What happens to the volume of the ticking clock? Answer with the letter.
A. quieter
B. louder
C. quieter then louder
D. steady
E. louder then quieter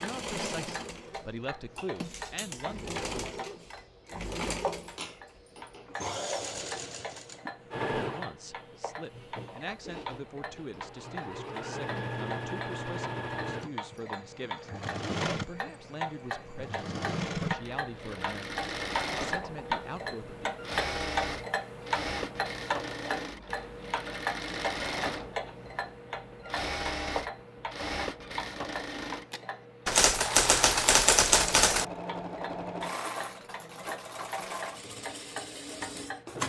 E.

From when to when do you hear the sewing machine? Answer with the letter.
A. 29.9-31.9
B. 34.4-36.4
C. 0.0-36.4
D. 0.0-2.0
C.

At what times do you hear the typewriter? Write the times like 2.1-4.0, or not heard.
29.9-31.9.